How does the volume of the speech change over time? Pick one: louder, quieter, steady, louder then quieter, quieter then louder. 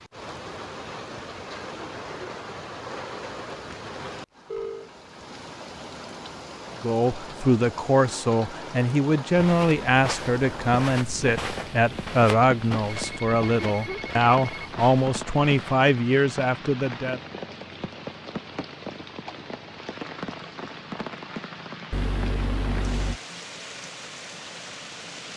steady.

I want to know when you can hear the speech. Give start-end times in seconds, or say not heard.
6.8-17.2.